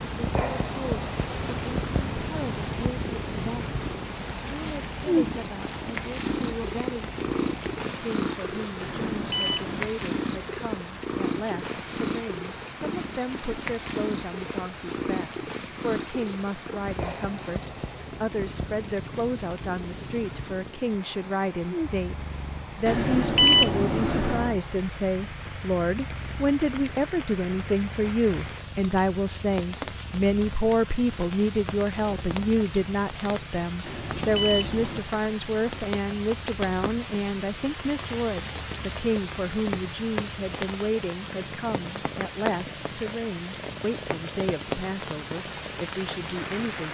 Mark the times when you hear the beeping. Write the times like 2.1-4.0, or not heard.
8.8-9.9, 22.9-24.6, 33.8-35.0.